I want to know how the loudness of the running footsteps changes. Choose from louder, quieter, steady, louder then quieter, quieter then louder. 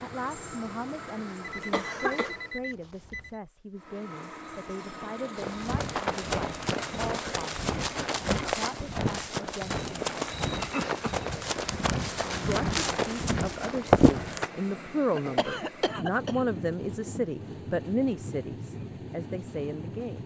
louder.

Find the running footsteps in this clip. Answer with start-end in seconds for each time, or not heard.
5.3-14.5.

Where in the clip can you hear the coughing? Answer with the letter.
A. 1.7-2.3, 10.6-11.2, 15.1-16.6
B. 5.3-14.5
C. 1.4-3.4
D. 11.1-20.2
A.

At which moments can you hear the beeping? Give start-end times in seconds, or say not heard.
1.4-3.4.